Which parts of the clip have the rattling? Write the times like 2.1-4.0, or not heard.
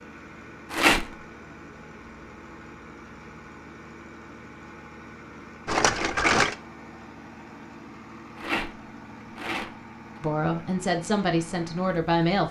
0.7-1.1, 5.7-6.5, 8.3-10.2.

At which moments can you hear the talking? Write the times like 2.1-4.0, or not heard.
10.2-12.4.